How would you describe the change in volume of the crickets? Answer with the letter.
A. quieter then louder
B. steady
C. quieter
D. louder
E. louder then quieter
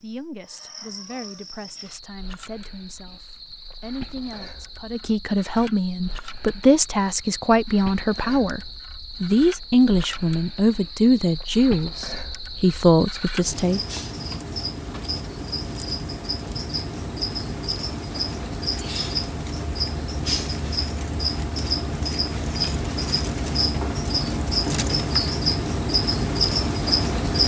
D.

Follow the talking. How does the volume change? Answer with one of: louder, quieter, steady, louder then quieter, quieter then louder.
louder.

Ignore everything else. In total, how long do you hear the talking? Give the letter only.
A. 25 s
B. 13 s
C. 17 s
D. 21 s
B.